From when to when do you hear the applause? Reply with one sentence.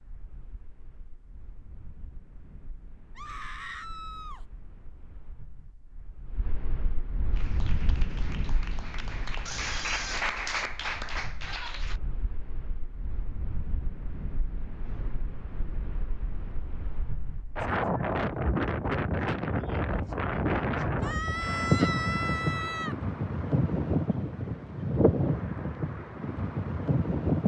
The applause can be heard from 7.3 to 12.0 s.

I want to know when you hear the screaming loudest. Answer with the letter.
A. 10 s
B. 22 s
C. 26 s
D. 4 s
B.